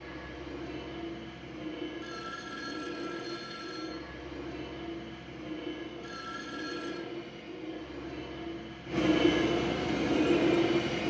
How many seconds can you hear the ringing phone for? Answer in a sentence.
You can hear the ringing phone for 3 seconds altogether.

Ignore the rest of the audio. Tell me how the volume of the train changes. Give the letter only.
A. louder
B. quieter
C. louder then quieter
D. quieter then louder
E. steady
A.